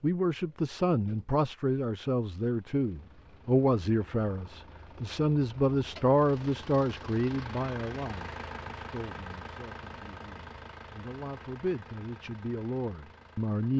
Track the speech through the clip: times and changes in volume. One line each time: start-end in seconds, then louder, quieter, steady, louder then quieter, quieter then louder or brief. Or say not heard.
0.0-13.7 quieter then louder.